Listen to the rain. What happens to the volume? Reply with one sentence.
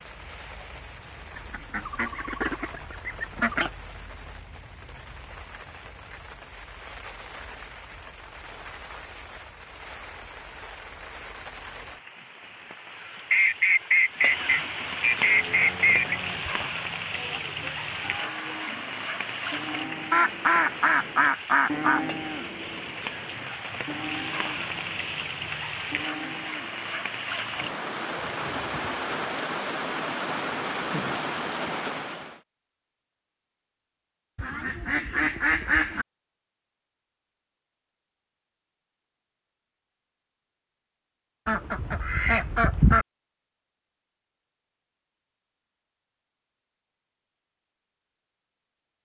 The loudness of the rain goes up.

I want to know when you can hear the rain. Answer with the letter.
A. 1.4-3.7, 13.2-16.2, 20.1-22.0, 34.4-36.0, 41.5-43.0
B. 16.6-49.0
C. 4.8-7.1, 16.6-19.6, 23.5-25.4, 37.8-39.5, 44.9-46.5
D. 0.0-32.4
D.